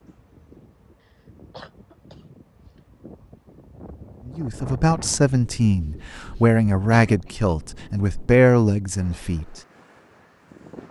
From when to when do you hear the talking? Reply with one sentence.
You can hear the talking from 4.2 to 9.6 s.